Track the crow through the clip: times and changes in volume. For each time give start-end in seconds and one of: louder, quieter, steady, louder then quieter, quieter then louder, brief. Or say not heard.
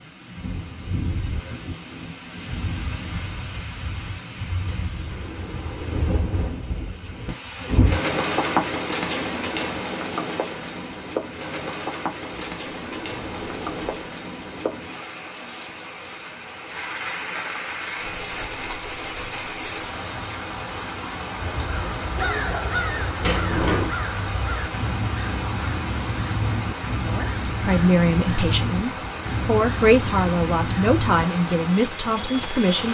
21.4-31.2 steady.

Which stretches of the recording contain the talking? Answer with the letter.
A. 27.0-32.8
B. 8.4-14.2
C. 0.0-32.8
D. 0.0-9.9
A.